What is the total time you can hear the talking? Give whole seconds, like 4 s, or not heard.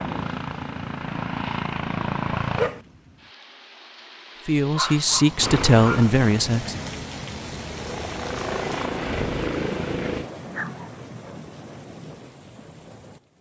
2 s.